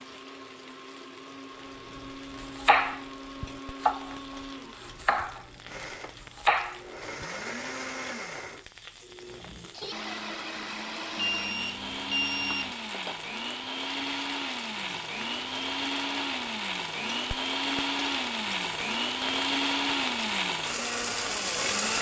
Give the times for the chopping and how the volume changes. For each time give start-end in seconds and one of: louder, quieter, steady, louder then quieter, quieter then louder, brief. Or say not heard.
2.4-7.2 quieter then louder.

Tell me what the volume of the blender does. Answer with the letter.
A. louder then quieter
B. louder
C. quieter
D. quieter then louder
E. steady
B.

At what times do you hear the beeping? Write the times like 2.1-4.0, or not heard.
11.2-12.8.